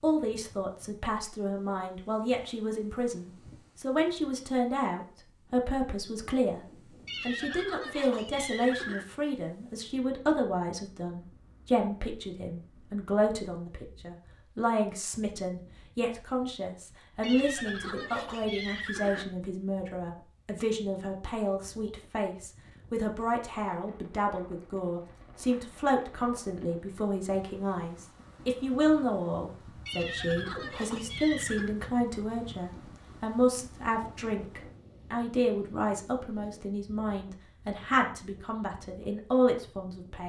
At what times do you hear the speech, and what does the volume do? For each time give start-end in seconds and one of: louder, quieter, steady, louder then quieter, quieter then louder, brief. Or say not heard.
0.0-40.2 steady.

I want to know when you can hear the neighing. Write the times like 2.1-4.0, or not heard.
7.0-9.1, 17.2-19.2, 29.9-31.8.